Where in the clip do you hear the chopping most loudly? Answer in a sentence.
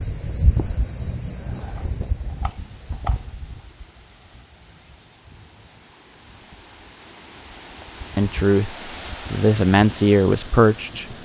The volume of the chopping peaks at 3 seconds.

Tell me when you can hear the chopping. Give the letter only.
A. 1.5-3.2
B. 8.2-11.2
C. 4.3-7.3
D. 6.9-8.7
A.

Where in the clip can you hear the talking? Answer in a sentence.
You can hear the talking from 8.2 to 11.2 s.